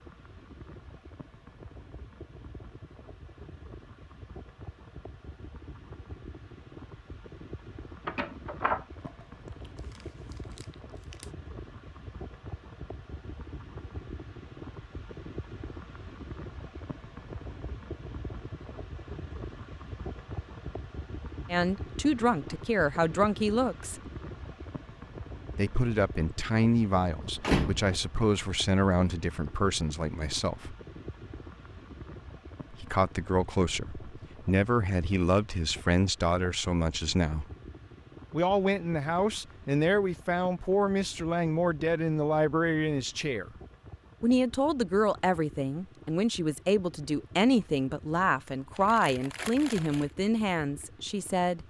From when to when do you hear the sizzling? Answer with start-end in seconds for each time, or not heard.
not heard.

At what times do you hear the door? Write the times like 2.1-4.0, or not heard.
8.1-8.8, 27.4-28.2.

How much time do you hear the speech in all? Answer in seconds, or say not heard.
25 s.